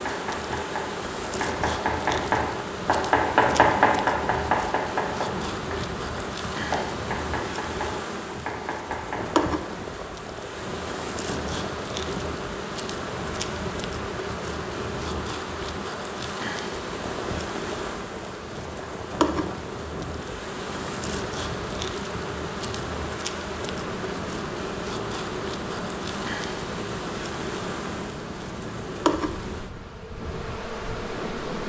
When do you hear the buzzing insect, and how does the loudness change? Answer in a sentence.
The buzzing insect can be heard from 0.0 to 31.6 s, at a steady volume.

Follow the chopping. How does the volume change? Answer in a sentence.
The volume of the chopping goes up, then down.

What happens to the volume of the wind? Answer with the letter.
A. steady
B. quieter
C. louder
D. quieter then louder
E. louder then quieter
A.